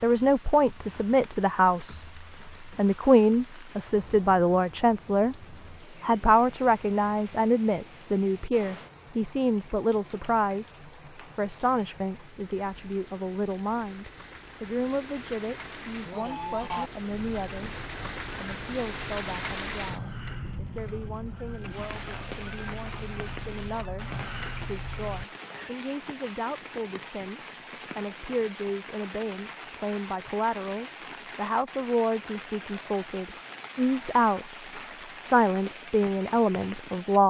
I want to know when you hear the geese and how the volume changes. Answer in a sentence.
The geese can be heard from 16.1 to 25.8 s, getting quieter then louder.